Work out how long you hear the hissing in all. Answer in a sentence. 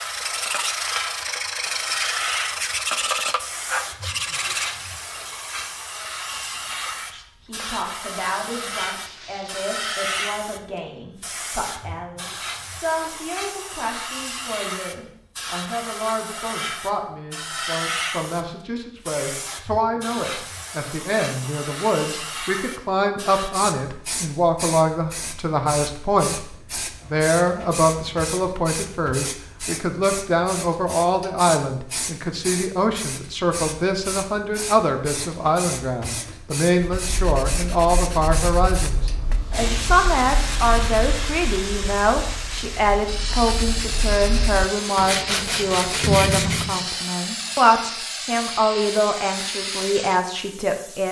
You can hear the hissing for 51 seconds altogether.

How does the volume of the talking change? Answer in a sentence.
The volume of the talking goes up.